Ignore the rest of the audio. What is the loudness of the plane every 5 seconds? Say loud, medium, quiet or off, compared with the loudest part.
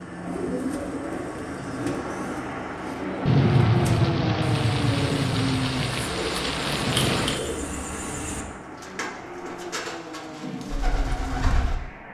loud, loud, medium.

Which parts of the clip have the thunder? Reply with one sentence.
You can hear the thunder from 3.2 to 7.4 s.